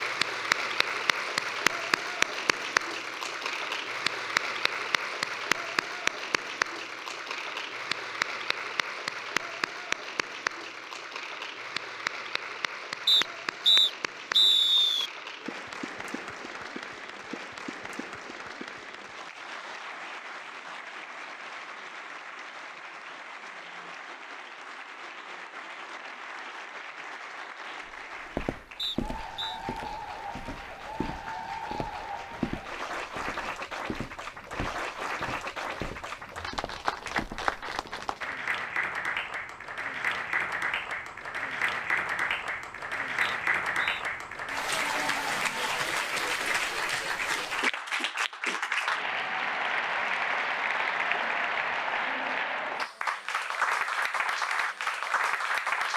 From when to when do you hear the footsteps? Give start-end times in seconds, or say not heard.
27.9-38.1.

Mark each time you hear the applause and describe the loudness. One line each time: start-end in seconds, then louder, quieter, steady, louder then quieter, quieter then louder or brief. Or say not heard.
0.0-55.9 quieter then louder.